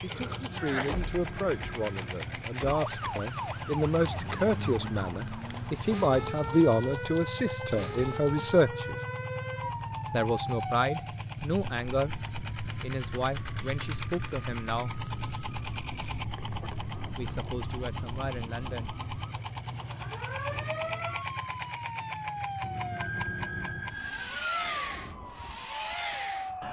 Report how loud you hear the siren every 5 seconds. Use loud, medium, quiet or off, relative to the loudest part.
loud, loud, loud, medium, loud, loud.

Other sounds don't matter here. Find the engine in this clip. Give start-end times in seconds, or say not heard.
0.0-26.6.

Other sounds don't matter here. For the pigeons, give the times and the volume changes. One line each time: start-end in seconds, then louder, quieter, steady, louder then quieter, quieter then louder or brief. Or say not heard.
not heard.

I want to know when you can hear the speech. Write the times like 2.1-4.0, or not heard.
0.0-9.0, 10.1-12.2, 12.8-15.1, 17.1-18.9.